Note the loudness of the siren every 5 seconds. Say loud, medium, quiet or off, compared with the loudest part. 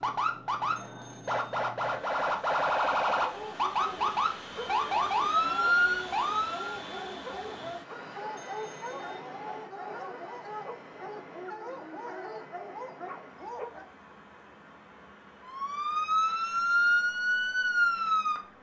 loud, loud, off, loud.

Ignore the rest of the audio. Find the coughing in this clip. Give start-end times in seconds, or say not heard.
not heard.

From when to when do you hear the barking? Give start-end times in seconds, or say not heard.
3.1-13.9.